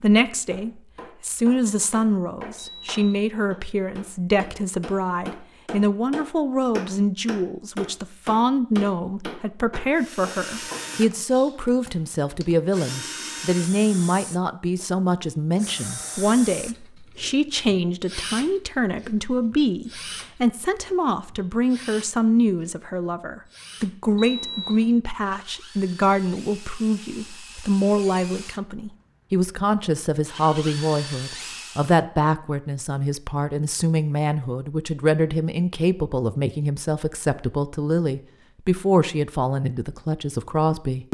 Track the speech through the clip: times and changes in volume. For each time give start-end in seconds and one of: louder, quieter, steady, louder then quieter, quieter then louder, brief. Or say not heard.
0.0-41.0 steady.